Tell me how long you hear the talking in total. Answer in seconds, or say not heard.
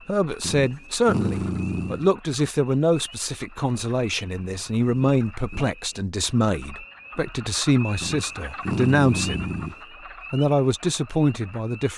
11 s.